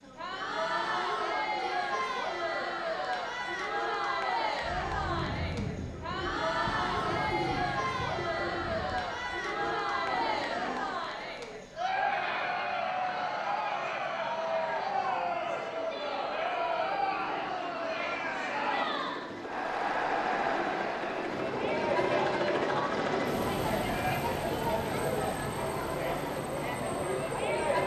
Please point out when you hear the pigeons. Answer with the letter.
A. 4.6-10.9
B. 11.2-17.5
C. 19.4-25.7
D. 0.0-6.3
A.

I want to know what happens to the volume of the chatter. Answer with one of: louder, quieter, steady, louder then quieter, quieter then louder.
steady.